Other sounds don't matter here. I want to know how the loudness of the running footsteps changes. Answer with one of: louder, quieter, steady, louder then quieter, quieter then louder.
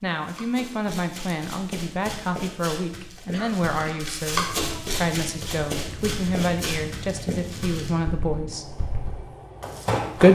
louder then quieter.